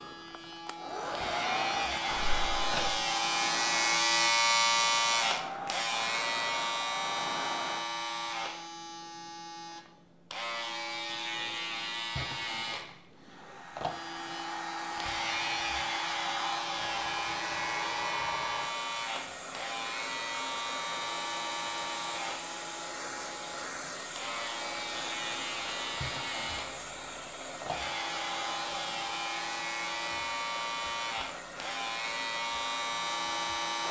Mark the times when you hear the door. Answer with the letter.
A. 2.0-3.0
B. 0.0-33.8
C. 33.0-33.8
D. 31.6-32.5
A.